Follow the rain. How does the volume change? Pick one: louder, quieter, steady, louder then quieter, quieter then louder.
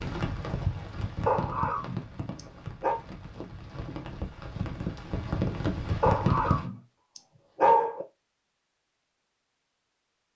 quieter then louder.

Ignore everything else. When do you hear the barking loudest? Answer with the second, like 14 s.
8 s.